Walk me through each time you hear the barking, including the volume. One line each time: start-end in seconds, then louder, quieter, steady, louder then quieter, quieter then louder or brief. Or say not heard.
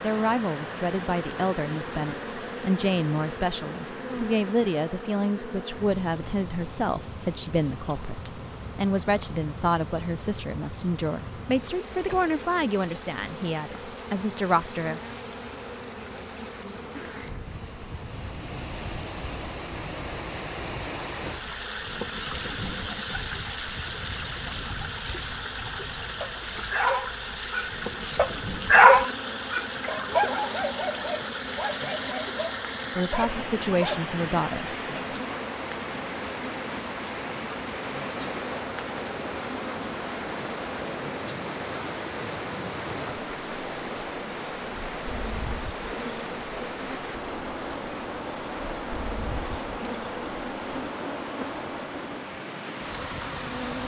26.2-34.1 louder then quieter.